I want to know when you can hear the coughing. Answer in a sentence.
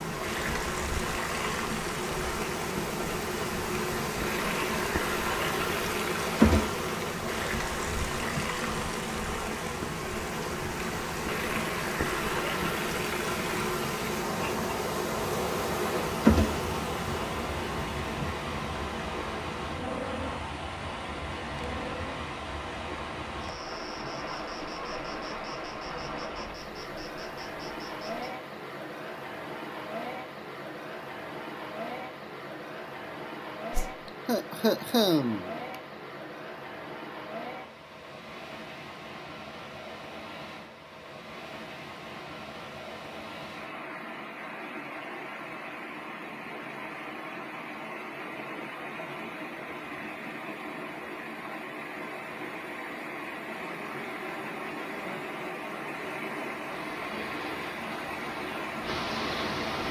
The coughing can be heard from 34.2 to 35.8 s.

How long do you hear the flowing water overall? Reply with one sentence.
You can hear the flowing water for 60 seconds altogether.